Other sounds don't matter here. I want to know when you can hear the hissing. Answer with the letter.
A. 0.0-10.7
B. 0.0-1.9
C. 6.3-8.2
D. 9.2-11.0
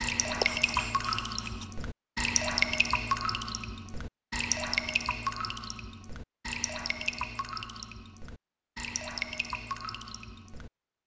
B.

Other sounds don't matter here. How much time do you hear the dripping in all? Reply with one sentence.
The dripping can be heard for 11 seconds in total.